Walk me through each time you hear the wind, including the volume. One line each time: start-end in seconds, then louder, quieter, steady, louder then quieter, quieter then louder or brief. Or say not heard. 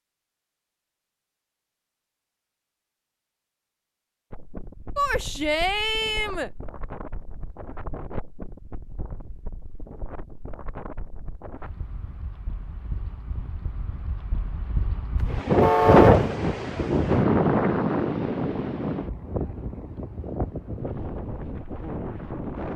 4.3-22.7 louder then quieter.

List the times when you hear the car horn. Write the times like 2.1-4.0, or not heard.
15.6-16.2.